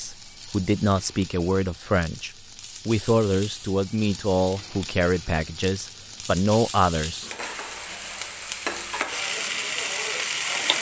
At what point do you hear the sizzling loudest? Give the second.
10 s.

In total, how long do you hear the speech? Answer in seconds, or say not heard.
7 s.